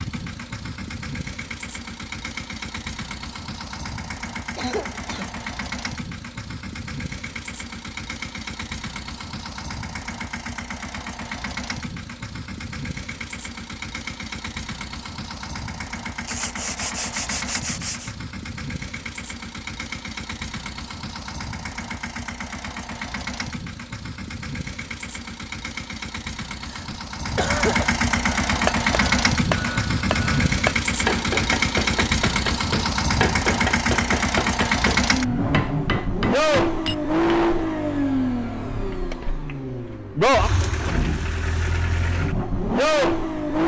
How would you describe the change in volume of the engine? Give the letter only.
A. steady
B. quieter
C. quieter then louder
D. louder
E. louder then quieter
D.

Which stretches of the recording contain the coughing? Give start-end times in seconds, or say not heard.
4.5-5.5, 26.6-27.9.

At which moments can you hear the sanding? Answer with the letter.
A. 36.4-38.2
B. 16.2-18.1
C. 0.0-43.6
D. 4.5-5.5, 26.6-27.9
B.